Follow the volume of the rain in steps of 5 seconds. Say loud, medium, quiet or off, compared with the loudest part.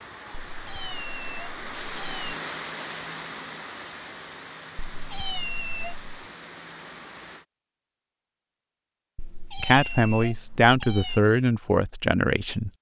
loud, medium, off.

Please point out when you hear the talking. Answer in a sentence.
The talking can be heard from 9.6 to 12.7 s.